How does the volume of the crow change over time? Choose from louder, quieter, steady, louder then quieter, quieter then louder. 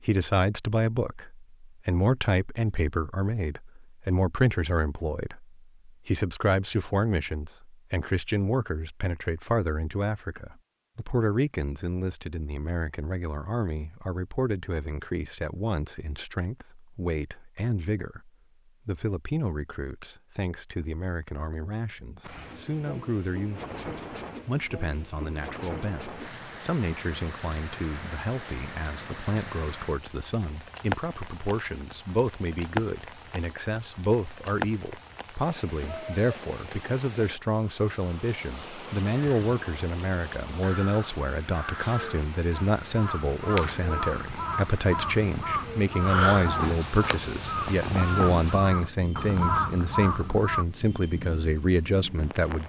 louder.